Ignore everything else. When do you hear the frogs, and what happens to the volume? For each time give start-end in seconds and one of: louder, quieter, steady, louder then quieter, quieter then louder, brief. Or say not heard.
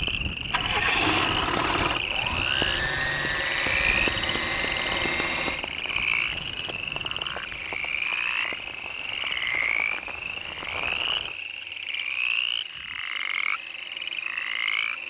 0.0-15.0 steady.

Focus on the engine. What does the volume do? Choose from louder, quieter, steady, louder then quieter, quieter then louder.
quieter.